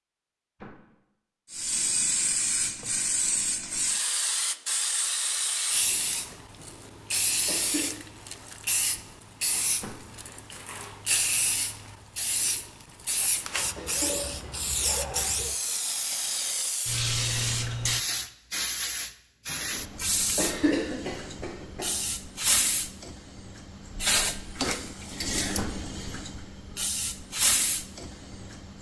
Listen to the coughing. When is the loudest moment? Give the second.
21 s.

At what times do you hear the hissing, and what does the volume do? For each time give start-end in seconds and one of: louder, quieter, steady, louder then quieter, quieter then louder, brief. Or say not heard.
1.5-28.7 steady.